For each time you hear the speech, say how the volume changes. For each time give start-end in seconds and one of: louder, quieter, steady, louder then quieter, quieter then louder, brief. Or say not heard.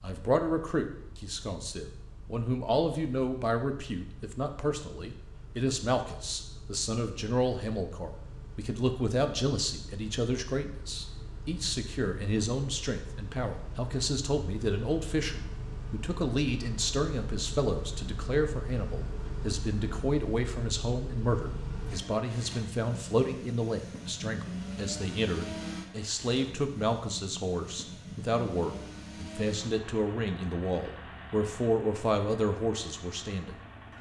0.0-33.9 steady.